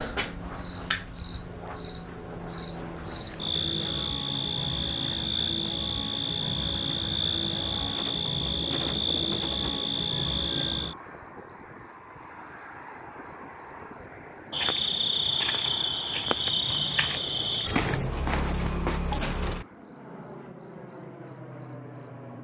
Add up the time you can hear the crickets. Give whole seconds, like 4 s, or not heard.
22 s.